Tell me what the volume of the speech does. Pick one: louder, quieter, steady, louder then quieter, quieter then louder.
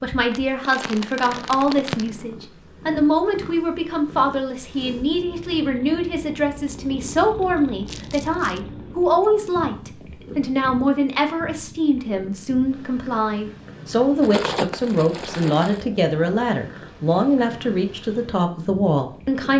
steady.